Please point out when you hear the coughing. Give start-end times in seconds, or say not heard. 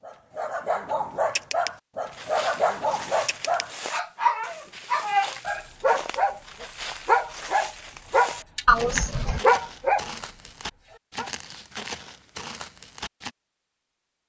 8.7-9.4.